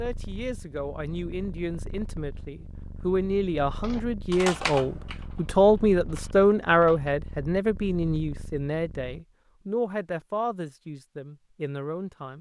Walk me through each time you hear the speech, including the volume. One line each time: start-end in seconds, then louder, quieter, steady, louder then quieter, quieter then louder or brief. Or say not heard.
0.0-12.3 louder then quieter.